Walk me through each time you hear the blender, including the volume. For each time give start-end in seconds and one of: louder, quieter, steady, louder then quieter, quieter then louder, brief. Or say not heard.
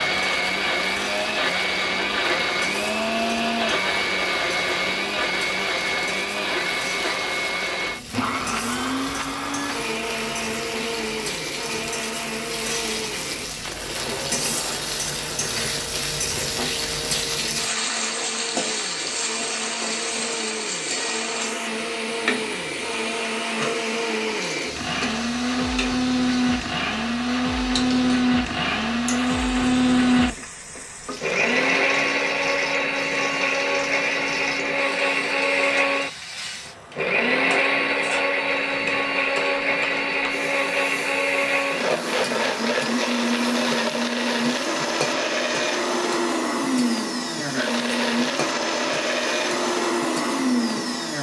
0.0-51.1 quieter then louder.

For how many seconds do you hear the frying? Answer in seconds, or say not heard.
51 s.